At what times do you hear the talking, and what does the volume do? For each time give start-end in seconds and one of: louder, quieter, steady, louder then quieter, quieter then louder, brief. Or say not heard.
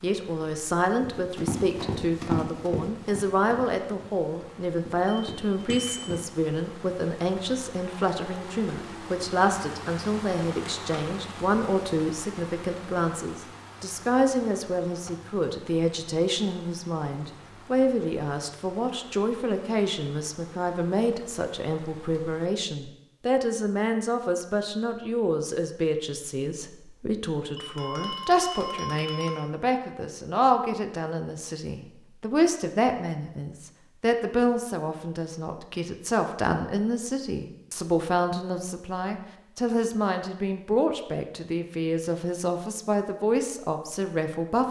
0.0-44.6 steady.